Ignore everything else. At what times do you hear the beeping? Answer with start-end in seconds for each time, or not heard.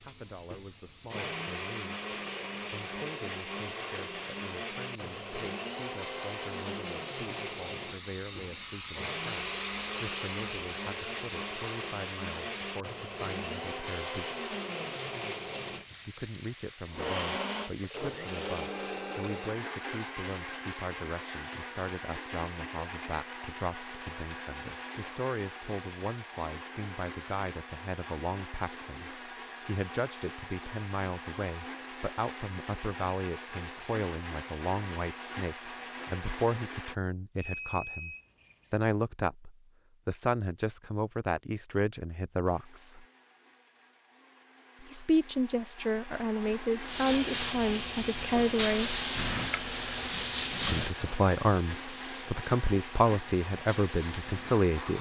37.4-38.9.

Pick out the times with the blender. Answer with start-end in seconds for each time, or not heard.
0.0-37.0, 42.5-54.9.